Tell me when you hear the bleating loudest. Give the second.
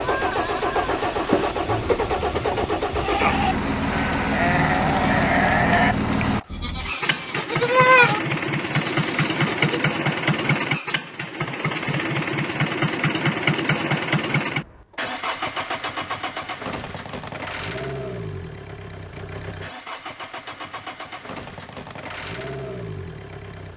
8 s.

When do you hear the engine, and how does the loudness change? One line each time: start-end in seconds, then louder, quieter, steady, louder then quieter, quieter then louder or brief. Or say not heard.
0.0-23.7 quieter.